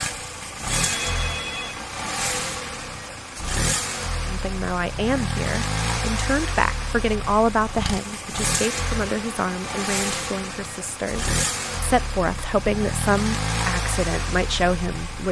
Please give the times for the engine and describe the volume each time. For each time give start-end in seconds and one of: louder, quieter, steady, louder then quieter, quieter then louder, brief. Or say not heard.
0.0-15.2 steady.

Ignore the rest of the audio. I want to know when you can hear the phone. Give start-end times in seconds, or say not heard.
0.7-1.8.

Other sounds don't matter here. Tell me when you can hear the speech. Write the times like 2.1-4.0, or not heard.
4.2-15.2.